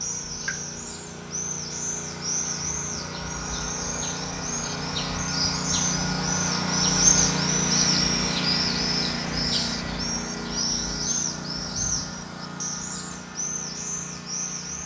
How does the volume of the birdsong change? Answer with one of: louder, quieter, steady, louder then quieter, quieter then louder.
louder then quieter.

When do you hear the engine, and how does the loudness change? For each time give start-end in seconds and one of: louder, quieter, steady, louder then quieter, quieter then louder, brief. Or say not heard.
0.0-14.8 louder then quieter.